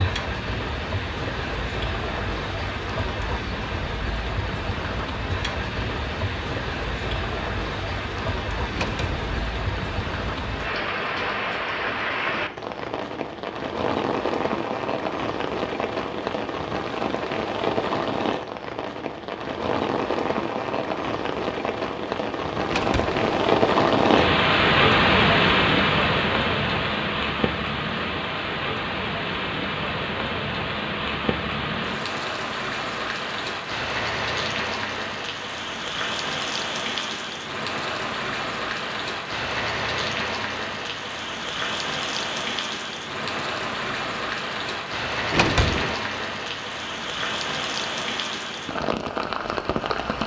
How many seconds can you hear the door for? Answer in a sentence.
The door can be heard for 2 seconds in total.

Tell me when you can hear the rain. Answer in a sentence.
You can hear the rain from 0.0 to 50.2 s.